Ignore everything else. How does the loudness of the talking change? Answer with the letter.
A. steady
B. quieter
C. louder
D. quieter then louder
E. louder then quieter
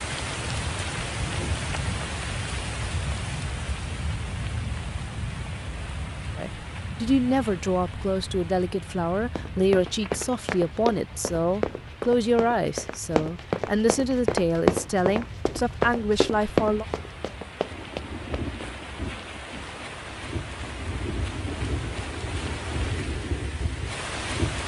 A.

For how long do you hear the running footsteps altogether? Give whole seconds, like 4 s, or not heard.
9 s.